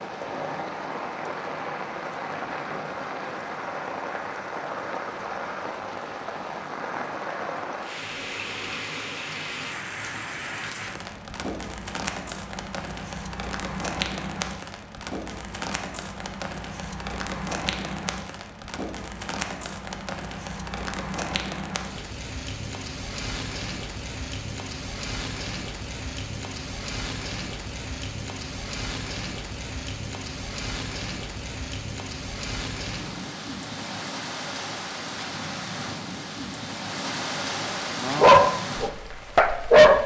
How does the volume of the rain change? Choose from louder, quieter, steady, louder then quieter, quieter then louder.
steady.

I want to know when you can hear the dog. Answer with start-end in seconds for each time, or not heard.
38.0-40.0.